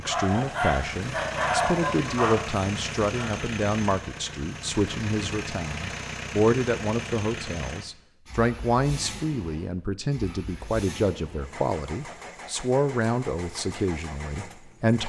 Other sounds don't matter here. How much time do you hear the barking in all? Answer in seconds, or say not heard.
3 s.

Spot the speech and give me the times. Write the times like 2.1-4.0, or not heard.
0.0-15.0.